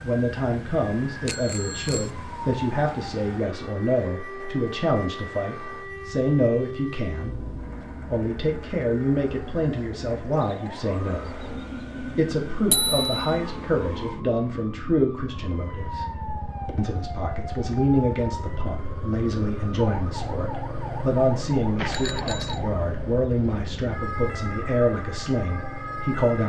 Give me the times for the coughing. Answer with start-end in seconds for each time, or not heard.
not heard.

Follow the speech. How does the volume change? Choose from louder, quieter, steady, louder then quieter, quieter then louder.
steady.